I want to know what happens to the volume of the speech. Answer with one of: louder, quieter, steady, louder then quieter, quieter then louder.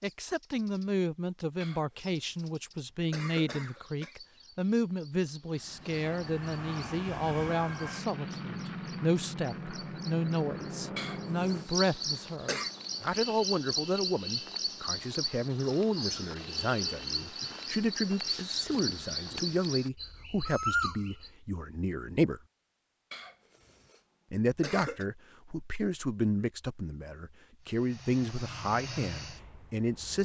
steady.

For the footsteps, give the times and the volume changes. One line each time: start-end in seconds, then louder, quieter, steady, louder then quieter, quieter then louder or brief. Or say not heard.
not heard.